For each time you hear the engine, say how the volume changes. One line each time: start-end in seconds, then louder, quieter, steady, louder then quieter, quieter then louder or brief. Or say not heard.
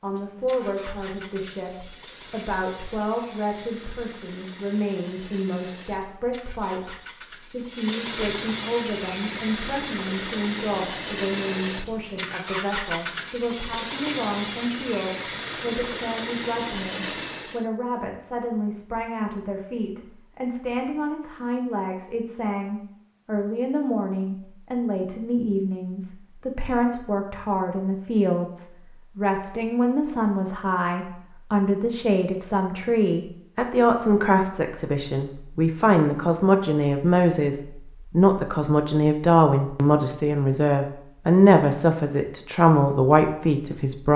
0.0-17.6 louder.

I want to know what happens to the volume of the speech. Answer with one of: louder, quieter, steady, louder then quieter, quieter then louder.
louder.